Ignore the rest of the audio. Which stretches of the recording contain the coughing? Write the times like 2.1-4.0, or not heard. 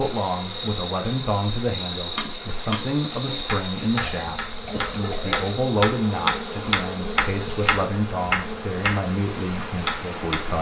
4.0-5.5.